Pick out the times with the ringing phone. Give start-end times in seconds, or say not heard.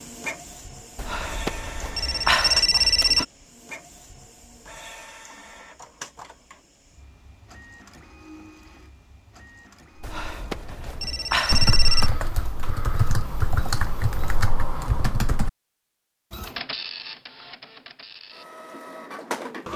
0.9-3.2, 10.0-12.1.